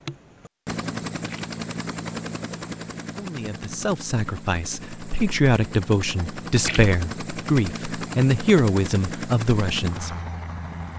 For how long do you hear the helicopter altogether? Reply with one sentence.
You can hear the helicopter for 11 seconds altogether.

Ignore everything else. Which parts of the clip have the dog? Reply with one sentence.
You can't hear the dog here.